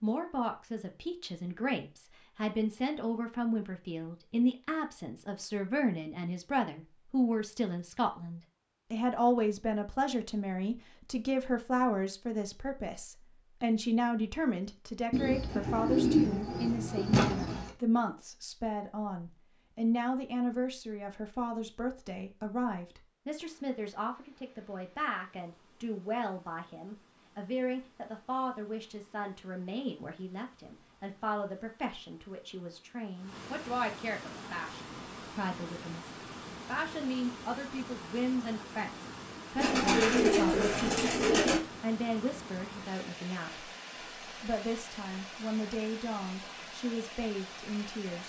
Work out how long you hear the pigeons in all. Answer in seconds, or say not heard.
5 s.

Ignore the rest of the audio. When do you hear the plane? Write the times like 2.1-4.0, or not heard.
not heard.